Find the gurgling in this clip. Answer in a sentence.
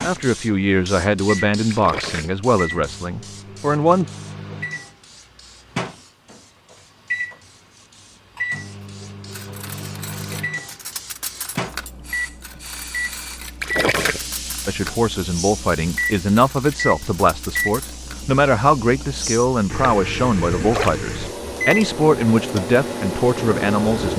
You can hear the gurgling from 1.7 to 2.3 s, from 13.6 to 14.2 s and from 20.4 to 21.0 s.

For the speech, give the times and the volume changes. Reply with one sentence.
You can hear the speech from 0.0 to 4.0 s, getting quieter; and from 14.7 to 24.1 s, at a steady volume.